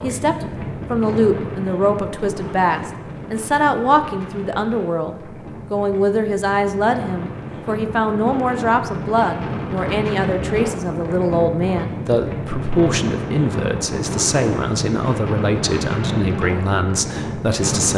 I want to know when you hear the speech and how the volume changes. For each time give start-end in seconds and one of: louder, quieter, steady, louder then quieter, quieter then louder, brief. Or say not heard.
0.0-17.9 steady.